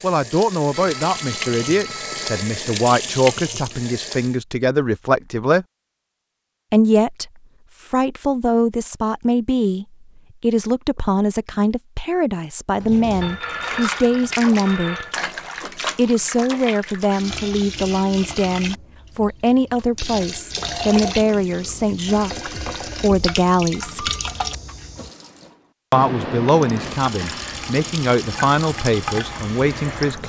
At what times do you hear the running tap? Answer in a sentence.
The running tap can be heard from 0.0 to 4.4 s and from 12.7 to 30.2 s.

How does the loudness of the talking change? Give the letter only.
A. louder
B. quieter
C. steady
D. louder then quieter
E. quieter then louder
C.